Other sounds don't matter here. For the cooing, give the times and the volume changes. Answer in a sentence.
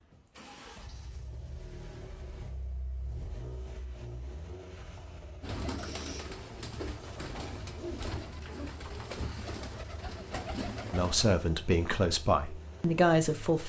The cooing can be heard from 5.4 to 11.3 s, at a steady volume.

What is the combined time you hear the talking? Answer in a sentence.
The talking can be heard for 3 seconds in total.